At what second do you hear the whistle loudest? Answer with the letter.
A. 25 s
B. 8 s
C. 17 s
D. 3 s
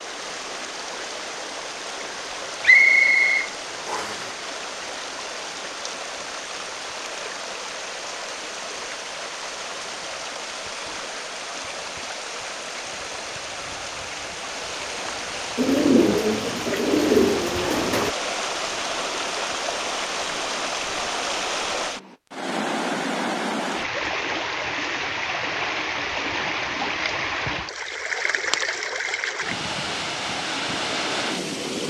D.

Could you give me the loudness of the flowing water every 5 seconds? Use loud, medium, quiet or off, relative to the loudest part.
medium, medium, medium, loud, loud, loud, loud.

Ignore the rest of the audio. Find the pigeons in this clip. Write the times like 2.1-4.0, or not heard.
15.6-18.1.